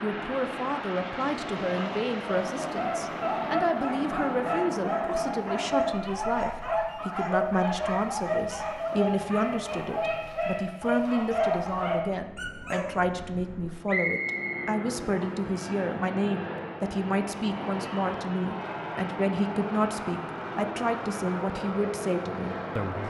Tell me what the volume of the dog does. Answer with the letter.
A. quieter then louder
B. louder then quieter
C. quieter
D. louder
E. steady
E.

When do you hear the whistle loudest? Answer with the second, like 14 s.
14 s.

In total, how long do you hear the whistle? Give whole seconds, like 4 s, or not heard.
2 s.